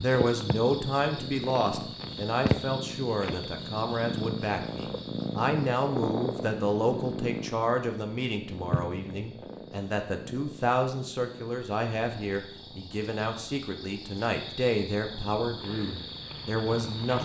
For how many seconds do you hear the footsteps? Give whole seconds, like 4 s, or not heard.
not heard.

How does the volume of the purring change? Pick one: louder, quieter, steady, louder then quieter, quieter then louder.
quieter.